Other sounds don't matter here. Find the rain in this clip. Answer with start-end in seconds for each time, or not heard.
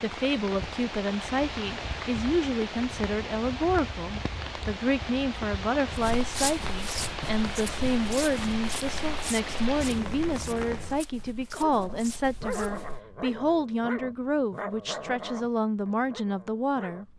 0.0-11.1.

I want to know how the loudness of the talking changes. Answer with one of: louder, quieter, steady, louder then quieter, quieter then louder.
steady.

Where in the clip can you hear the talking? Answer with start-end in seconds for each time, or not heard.
0.0-17.1.